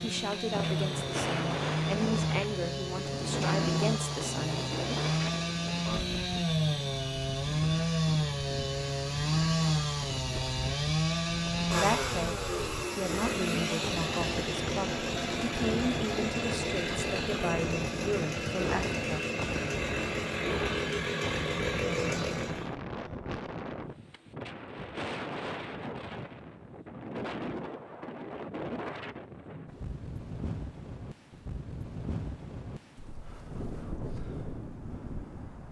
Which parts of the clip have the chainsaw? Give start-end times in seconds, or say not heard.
0.0-22.8.